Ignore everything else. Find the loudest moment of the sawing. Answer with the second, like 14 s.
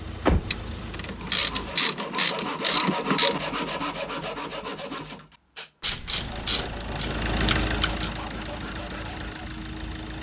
3 s.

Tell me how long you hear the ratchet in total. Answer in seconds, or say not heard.
5 s.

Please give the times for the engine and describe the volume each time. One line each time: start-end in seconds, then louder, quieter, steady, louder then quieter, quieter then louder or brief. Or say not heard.
0.0-1.8 brief
6.1-10.1 louder then quieter.